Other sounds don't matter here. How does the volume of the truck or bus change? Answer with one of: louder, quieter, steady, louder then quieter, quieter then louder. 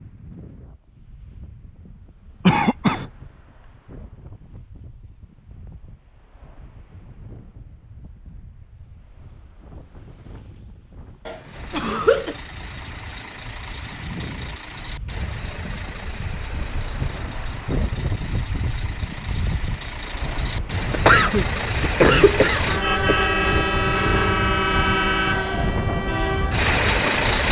louder.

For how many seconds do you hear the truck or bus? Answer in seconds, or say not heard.
16 s.